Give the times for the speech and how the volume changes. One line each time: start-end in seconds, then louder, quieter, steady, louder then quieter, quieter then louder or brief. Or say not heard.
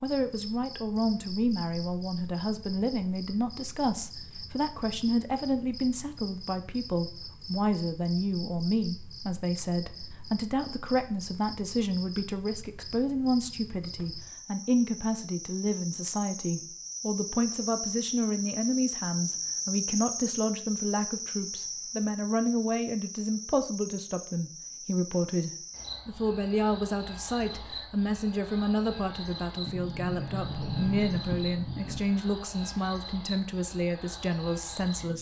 0.0-35.1 steady.